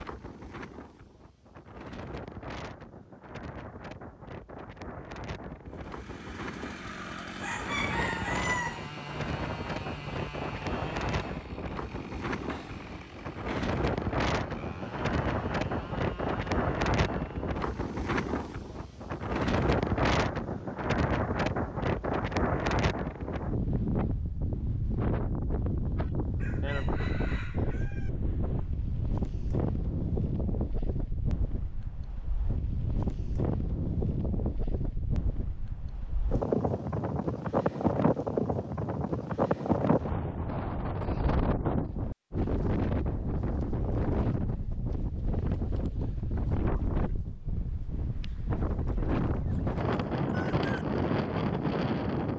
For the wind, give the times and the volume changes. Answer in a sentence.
You can hear the wind from 0.0 to 52.3 s, getting louder.